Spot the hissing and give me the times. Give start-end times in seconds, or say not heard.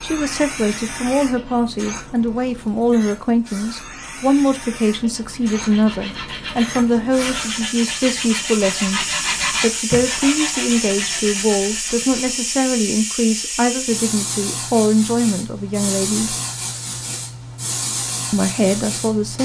0.0-19.4.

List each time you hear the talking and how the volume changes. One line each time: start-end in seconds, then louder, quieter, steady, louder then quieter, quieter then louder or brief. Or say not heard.
0.0-16.4 steady
18.3-19.4 brief.